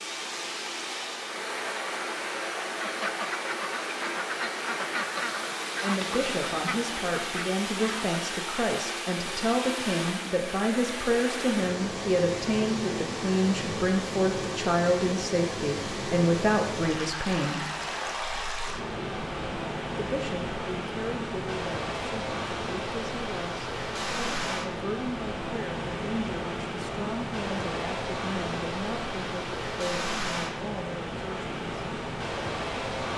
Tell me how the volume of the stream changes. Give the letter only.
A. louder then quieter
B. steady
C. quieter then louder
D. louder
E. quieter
B.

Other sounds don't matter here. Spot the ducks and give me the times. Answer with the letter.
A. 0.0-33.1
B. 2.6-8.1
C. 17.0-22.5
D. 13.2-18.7
B.